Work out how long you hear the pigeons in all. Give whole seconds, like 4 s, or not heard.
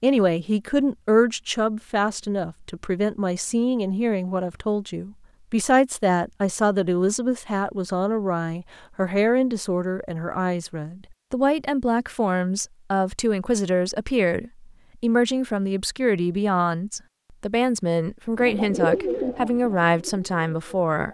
3 s.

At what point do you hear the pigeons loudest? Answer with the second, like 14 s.
19 s.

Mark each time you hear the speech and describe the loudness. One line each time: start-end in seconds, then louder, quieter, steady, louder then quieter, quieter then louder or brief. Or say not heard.
0.0-21.0 steady.